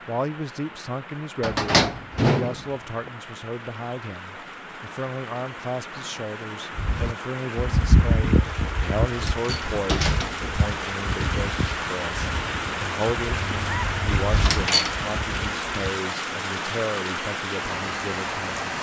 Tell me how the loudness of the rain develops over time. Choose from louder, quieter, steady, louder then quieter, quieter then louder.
louder.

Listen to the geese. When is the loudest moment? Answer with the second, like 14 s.
8 s.